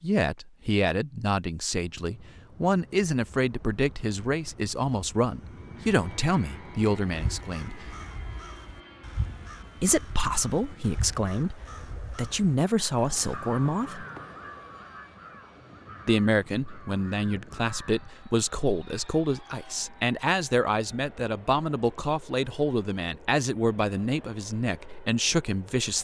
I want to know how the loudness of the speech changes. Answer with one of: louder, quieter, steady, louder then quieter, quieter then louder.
steady.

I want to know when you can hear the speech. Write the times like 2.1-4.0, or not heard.
0.0-8.0, 9.8-14.1, 16.1-25.9.